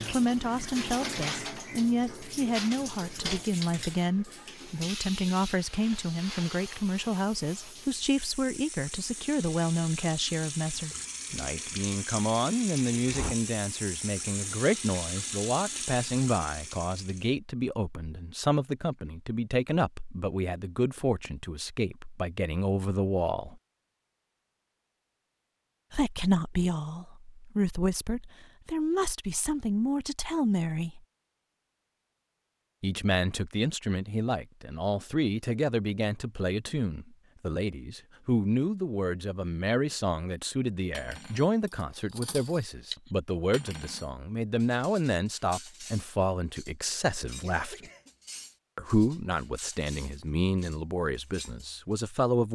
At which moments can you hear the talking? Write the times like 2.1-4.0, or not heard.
0.1-23.6, 25.9-31.0, 32.8-47.9, 48.8-52.5.